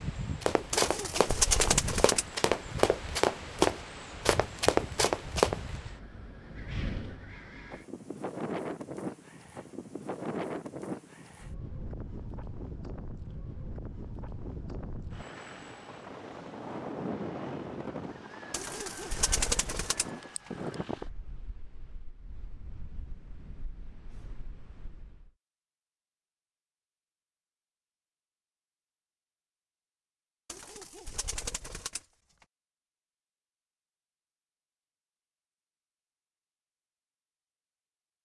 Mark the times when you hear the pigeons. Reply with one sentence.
You can hear the pigeons from 0.7 to 2.2 s, from 18.5 to 20.5 s and from 30.4 to 32.5 s.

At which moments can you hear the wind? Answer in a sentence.
The wind can be heard from 0.0 to 25.3 s.